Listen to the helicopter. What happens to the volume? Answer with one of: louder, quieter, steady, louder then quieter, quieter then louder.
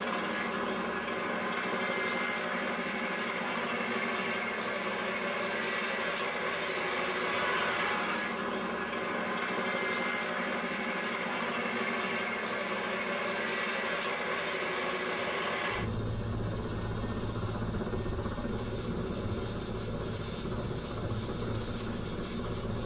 steady.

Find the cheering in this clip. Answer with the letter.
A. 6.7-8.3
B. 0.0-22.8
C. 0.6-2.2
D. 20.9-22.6
A.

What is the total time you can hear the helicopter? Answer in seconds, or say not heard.
23 s.